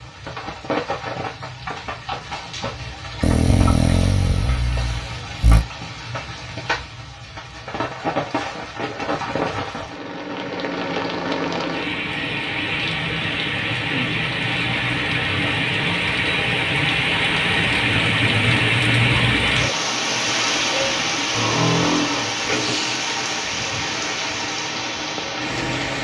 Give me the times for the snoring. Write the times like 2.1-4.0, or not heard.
3.2-5.7, 21.3-23.0.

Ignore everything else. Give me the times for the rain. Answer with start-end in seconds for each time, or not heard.
0.0-26.0.